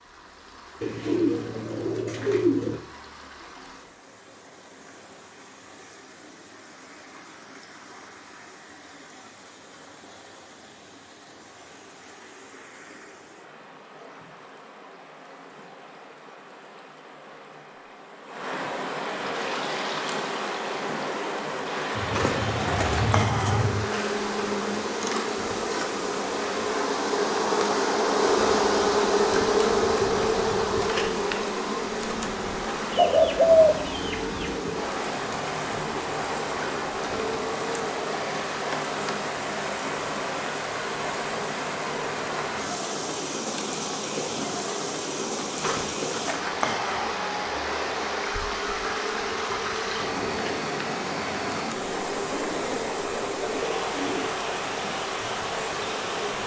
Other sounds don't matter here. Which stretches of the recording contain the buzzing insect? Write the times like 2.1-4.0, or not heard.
19.4-56.4.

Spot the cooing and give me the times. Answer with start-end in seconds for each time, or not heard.
0.8-2.8, 21.9-23.9, 32.9-34.7, 52.5-54.4.